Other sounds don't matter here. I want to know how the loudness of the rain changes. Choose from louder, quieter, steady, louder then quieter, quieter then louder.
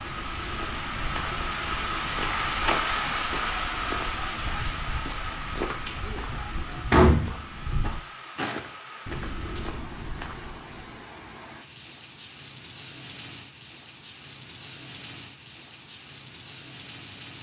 quieter.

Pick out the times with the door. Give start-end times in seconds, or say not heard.
6.1-7.3.